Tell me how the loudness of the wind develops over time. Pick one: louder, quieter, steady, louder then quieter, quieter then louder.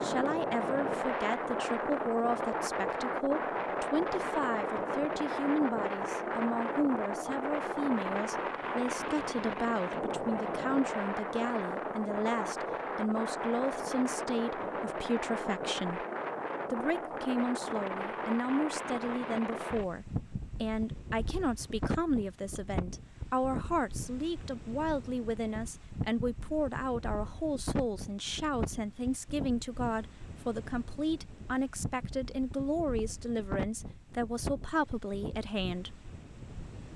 quieter.